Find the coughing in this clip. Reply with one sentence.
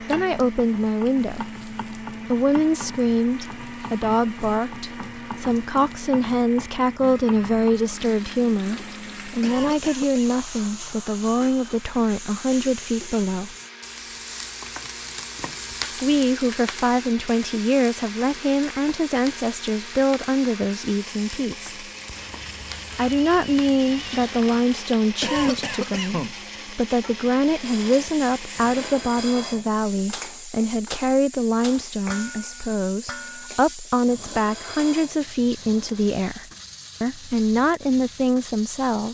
You can hear the coughing from 9.4 to 10.3 s and from 25.2 to 26.8 s.